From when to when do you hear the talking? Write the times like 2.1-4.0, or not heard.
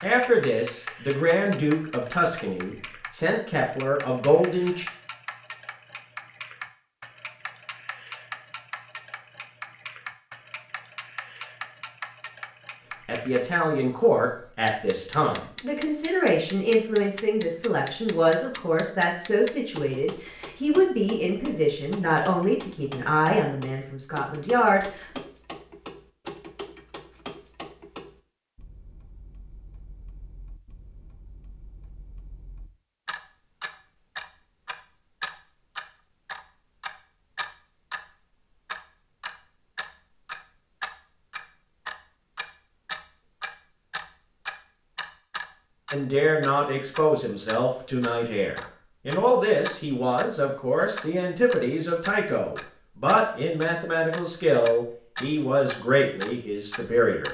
0.0-4.8, 13.1-25.2, 45.9-57.3.